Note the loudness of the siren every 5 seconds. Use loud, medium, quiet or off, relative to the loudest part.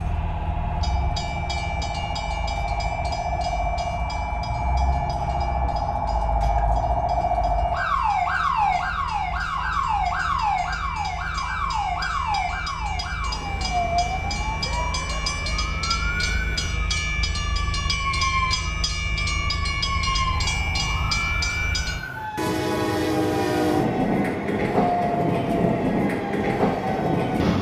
medium, loud, loud, medium, medium, medium.